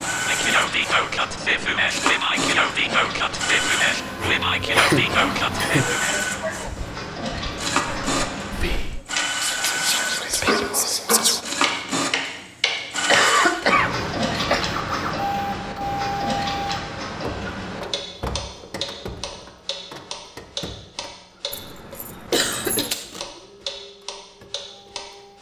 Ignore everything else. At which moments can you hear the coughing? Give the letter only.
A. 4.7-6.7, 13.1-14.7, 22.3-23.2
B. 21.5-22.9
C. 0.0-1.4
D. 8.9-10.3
A.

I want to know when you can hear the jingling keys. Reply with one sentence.
The jingling keys can be heard from 21.5 to 22.9 s.